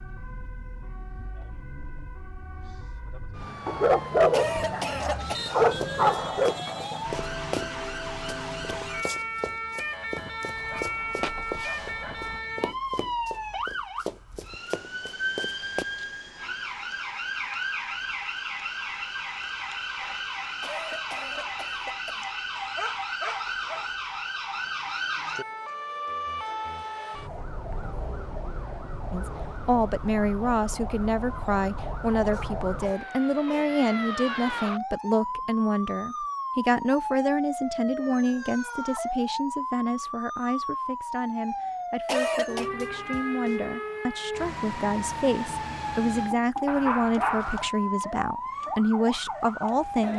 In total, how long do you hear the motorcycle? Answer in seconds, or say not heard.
not heard.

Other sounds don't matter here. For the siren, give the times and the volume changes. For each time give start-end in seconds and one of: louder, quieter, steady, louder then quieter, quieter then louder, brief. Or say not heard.
0.0-50.1 steady.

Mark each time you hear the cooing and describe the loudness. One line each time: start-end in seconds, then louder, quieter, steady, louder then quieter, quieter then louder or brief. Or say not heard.
not heard.